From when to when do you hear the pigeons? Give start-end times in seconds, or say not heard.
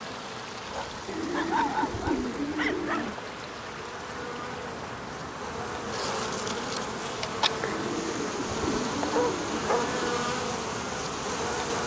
1.1-3.1, 7.7-10.0.